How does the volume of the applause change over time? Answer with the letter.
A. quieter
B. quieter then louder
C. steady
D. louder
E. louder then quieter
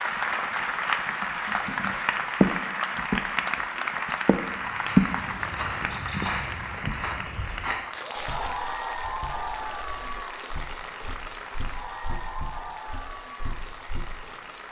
A.